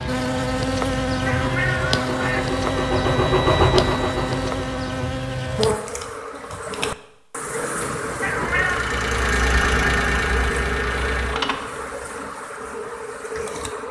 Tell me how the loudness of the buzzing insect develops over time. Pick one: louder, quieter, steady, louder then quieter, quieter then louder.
quieter.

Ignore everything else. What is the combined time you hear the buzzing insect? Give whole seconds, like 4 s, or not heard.
14 s.